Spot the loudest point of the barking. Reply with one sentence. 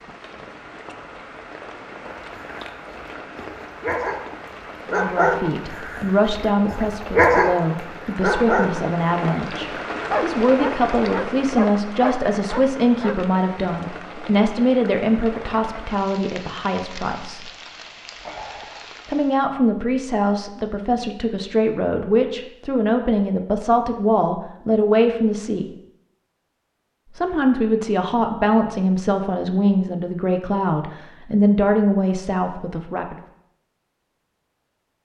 The volume of the barking peaks at 7 seconds.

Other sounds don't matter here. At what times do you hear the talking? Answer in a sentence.
The talking can be heard from 4.9 to 17.4 s, from 19.1 to 25.6 s and from 27.1 to 33.1 s.